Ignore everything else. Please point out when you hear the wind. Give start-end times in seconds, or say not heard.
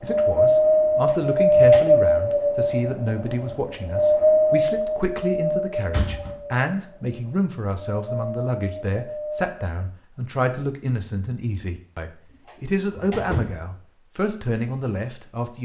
0.0-9.6.